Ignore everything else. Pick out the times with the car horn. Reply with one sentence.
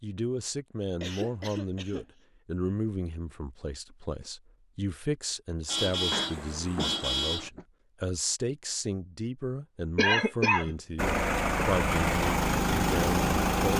The car horn can be heard from 5.7 to 7.5 s.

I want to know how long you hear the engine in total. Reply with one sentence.
The engine can be heard for 3 seconds in total.